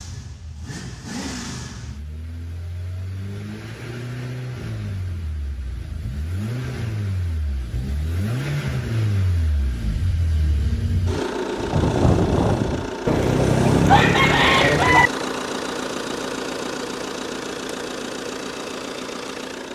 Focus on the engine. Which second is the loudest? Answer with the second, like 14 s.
12 s.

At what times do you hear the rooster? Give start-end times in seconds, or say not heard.
13.1-15.1.